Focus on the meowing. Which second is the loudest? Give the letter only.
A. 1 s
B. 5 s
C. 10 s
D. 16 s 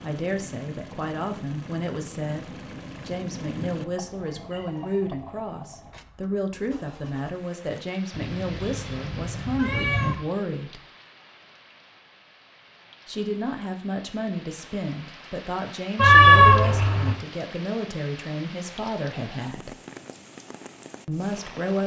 D.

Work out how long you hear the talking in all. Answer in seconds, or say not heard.
18 s.